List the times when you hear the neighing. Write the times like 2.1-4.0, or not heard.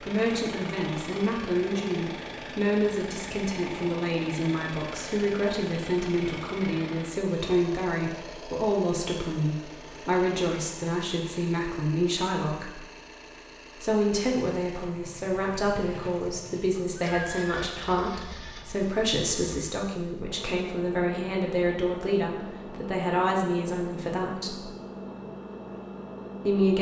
16.7-17.8.